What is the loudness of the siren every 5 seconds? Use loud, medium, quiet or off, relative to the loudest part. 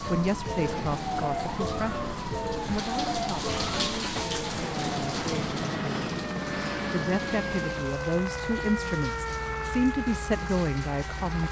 loud, loud, medium.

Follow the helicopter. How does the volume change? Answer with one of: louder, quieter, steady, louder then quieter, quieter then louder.
louder then quieter.